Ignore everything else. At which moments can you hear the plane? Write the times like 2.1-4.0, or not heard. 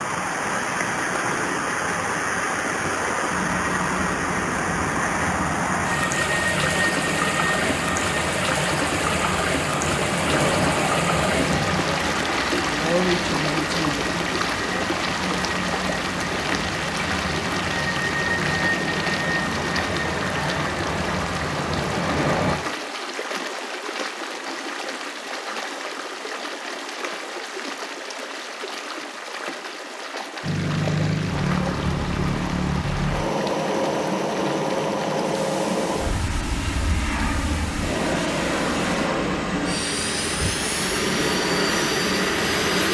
3.2-22.6, 30.4-42.8.